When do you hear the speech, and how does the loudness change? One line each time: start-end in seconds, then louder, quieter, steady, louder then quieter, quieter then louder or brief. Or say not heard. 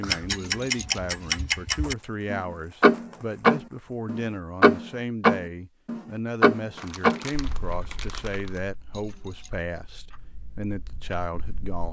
0.0-11.8 steady.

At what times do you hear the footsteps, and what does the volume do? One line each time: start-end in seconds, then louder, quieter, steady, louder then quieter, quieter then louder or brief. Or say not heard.
not heard.